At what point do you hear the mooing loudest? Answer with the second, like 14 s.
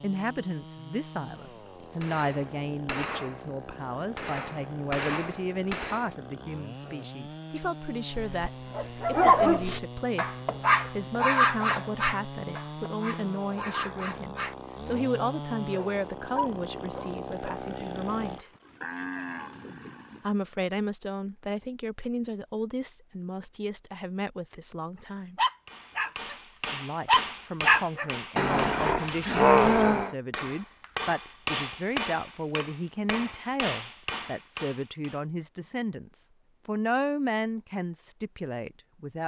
19 s.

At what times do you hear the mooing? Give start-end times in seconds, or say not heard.
17.8-20.2.